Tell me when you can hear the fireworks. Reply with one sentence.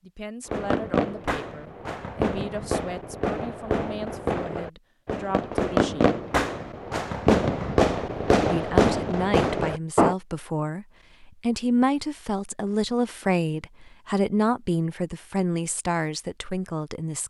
The fireworks can be heard from 0.5 to 10.2 s.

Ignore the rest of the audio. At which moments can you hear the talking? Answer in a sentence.
You can hear the talking from 0.0 to 6.1 s and from 8.4 to 17.2 s.